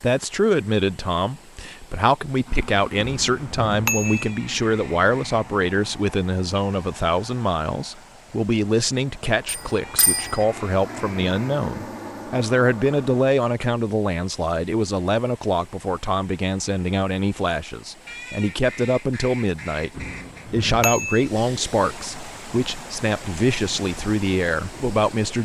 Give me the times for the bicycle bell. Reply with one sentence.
You can hear the bicycle bell from 3.0 to 4.3 s, from 9.4 to 10.4 s and from 19.9 to 21.2 s.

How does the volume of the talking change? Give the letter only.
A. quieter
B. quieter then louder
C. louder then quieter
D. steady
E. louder
D.